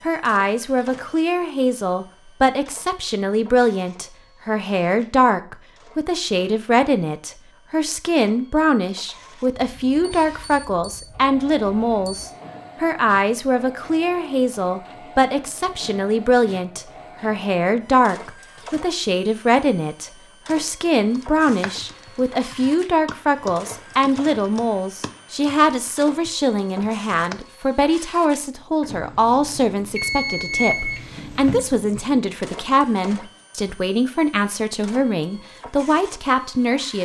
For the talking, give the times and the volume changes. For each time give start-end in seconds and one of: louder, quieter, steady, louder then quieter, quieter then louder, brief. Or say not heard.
0.0-37.0 steady.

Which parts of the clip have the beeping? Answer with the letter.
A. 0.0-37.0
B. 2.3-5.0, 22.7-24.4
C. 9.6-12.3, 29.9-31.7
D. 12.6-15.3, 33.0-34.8
C.